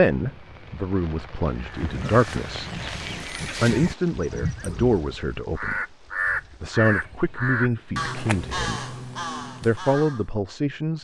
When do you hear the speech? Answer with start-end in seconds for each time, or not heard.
0.0-2.7, 3.6-5.8, 6.6-8.9, 9.6-11.0.